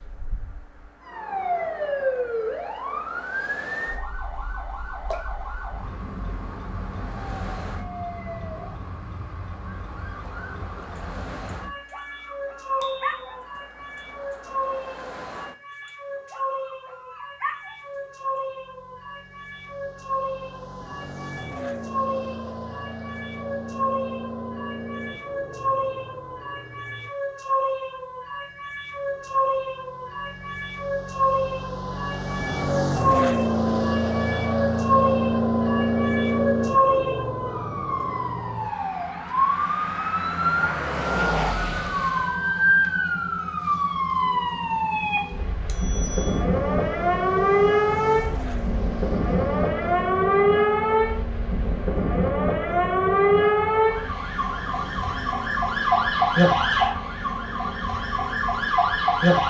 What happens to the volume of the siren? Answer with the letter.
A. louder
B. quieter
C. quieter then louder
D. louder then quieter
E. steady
A.